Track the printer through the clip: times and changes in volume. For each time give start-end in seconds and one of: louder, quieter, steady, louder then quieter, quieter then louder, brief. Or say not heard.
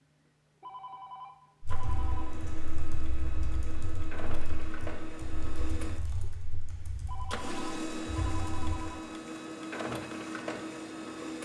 0.0-11.3 louder.